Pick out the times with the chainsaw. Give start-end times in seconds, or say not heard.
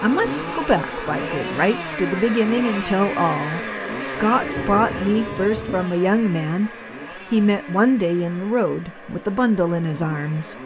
0.0-10.6.